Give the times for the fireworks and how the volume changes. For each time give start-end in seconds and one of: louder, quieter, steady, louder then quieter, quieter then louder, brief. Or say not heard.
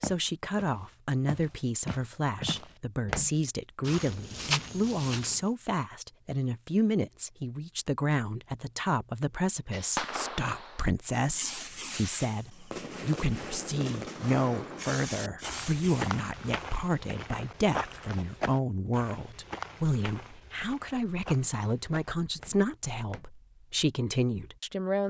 9.7-16.2 steady.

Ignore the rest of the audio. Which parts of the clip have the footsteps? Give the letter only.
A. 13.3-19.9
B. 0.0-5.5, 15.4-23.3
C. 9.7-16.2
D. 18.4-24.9
B.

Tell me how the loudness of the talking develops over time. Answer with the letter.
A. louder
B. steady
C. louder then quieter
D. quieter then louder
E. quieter
B.